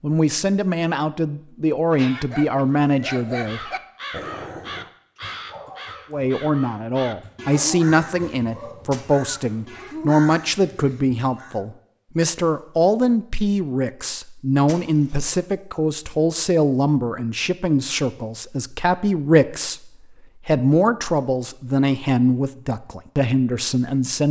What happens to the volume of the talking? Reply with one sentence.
The volume of the talking stays about the same.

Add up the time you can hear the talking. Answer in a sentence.
The talking can be heard for 22 seconds in total.